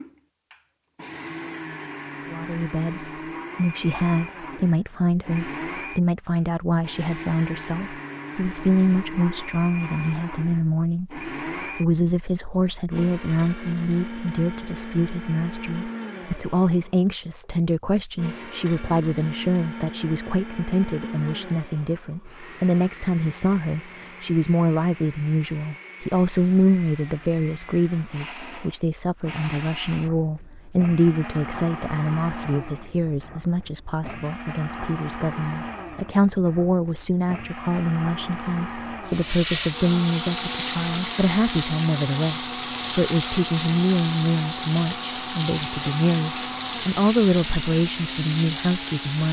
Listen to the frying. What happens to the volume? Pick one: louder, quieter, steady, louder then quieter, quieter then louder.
steady.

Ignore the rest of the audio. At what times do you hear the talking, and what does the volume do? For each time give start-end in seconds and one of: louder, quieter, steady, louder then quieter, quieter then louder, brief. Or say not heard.
2.3-49.2 steady.